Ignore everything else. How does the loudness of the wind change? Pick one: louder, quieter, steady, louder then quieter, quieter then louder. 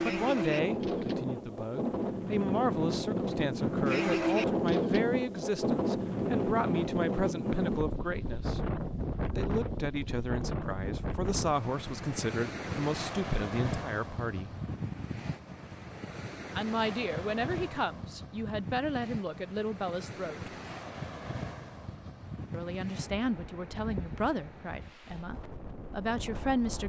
quieter.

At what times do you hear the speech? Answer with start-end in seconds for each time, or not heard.
0.1-8.6, 9.3-14.5, 16.6-20.5, 22.5-26.8.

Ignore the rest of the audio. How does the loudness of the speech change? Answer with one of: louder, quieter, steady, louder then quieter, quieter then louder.
steady.